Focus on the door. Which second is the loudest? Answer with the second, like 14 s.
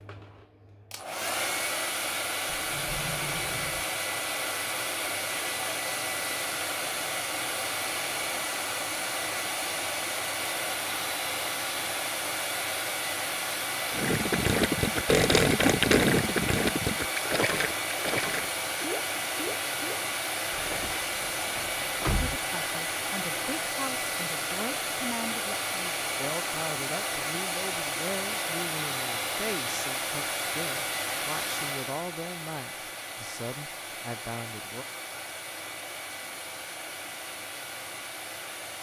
22 s.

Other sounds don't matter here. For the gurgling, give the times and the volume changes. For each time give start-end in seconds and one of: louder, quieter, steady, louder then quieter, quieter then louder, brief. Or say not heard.
13.9-21.8 quieter.